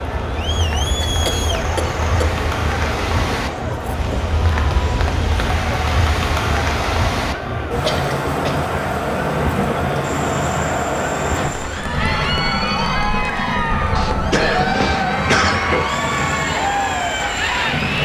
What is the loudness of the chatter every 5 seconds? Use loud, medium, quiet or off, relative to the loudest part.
medium, medium, loud, loud.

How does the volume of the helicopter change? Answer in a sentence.
The volume of the helicopter stays about the same.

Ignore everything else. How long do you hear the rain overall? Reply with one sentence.
You can hear the rain for 18 seconds altogether.